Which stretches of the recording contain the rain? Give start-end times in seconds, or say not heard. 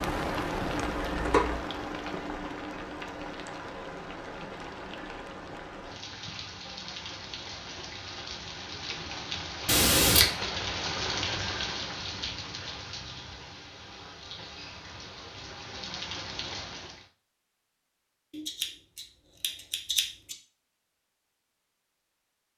0.0-17.1.